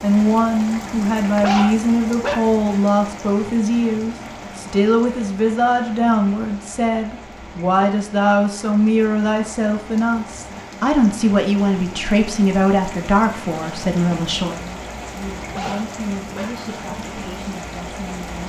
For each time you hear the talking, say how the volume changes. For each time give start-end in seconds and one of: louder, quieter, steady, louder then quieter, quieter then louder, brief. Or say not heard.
0.0-18.4 quieter.